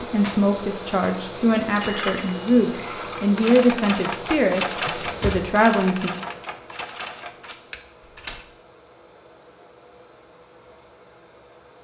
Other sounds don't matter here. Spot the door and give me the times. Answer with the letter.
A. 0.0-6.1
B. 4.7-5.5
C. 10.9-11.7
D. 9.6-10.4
B.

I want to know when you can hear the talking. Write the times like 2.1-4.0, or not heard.
0.0-6.1.